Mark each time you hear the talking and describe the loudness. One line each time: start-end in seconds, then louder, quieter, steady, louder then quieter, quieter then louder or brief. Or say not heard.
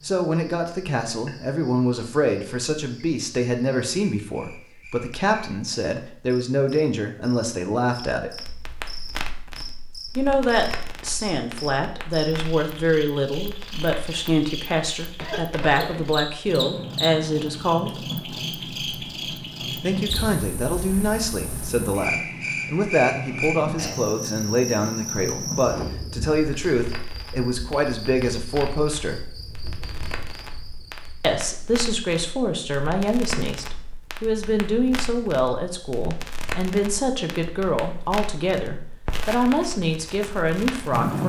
0.0-8.4 steady
10.2-18.1 steady
19.8-29.3 steady
31.2-41.2 steady.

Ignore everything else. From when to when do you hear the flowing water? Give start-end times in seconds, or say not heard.
not heard.